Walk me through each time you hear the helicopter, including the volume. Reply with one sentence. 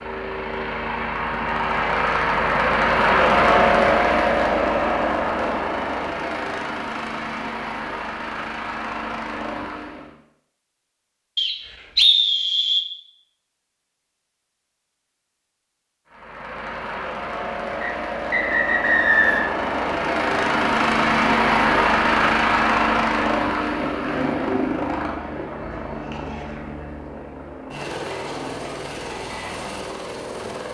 You can hear the helicopter from 0.0 to 10.2 s, getting louder then quieter; and from 16.1 to 30.6 s, getting louder then quieter.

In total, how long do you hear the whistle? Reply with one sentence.
You can hear the whistle for 3 seconds altogether.